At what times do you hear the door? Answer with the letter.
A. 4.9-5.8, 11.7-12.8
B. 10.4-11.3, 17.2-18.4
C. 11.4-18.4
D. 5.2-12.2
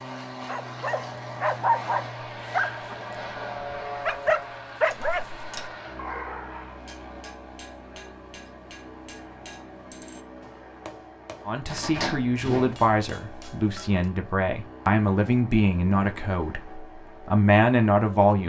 A.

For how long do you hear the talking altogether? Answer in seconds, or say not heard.
7 s.